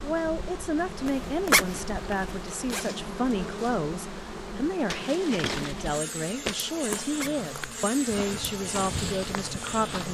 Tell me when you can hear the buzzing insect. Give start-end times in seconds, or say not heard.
0.0-10.0.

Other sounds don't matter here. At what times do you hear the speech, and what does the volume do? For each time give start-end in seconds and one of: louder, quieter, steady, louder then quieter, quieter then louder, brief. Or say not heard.
0.0-10.0 steady.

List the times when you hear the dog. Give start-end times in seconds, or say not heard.
not heard.